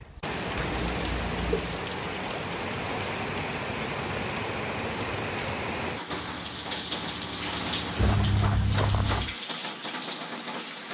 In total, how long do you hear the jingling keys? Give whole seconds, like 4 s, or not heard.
3 s.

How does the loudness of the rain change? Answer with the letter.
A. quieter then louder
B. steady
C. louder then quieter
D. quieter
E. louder
B.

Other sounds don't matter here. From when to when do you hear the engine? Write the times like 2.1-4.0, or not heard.
6.0-8.2.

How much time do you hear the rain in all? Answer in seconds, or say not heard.
11 s.